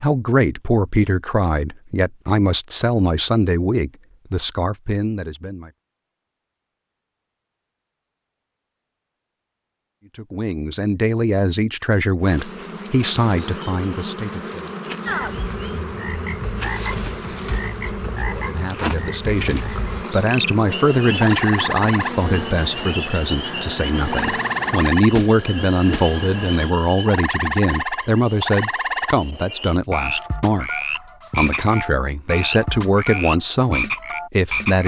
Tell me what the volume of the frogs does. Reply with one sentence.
The loudness of the frogs goes up.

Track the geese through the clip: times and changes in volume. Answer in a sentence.
The geese can't be heard in this clip.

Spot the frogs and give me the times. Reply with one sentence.
The frogs can be heard from 15.1 to 34.8 s.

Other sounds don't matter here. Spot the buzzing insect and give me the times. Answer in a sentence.
You can hear the buzzing insect from 12.2 to 26.8 s.